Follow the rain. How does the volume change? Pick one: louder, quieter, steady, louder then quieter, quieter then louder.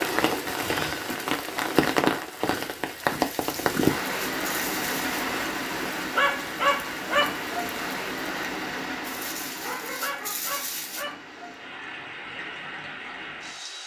quieter.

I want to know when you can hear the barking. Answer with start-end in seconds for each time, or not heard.
3.3-5.2, 9.0-11.1.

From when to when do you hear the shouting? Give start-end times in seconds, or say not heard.
not heard.